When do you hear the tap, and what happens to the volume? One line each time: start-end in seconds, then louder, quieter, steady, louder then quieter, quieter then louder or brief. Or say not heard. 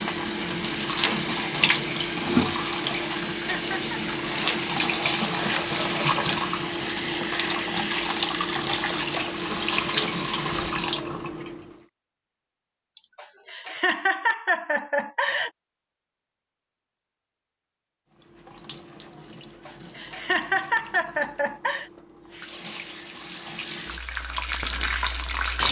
0.0-11.7 steady
18.1-25.6 louder.